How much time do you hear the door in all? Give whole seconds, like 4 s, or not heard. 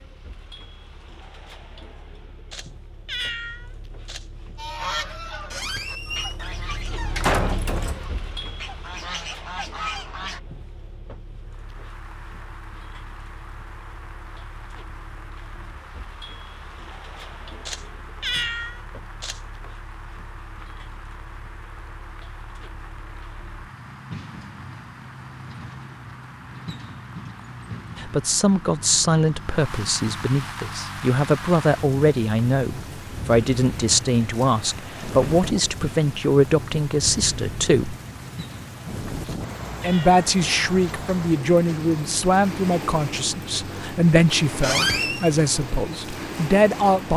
3 s.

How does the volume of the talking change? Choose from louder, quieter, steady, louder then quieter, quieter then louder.
steady.